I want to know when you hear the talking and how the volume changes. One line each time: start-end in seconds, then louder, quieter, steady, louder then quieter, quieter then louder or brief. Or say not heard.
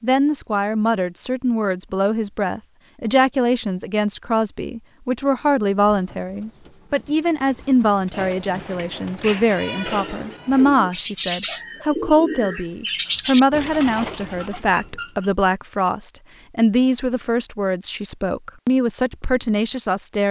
0.0-20.2 steady.